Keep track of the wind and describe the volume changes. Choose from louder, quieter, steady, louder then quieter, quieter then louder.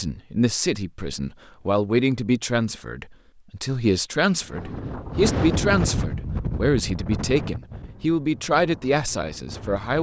quieter.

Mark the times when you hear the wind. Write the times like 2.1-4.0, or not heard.
4.4-9.9.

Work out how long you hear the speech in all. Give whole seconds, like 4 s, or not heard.
10 s.